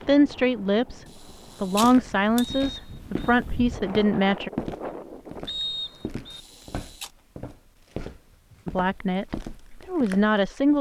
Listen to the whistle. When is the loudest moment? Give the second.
6 s.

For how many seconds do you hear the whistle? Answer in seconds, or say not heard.
2 s.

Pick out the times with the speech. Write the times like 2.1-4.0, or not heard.
0.1-4.5, 8.7-10.7.